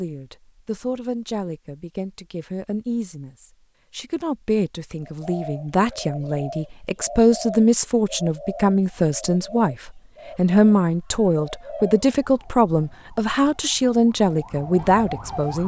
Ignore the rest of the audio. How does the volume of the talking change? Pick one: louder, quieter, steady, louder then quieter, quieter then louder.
louder.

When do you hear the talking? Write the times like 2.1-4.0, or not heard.
0.0-15.6.